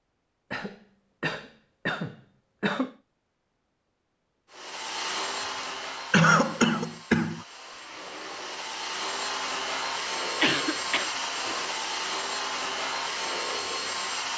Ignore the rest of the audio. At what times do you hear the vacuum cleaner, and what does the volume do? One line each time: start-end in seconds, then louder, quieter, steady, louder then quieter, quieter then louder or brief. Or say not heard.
4.5-14.3 quieter then louder.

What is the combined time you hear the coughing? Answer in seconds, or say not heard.
5 s.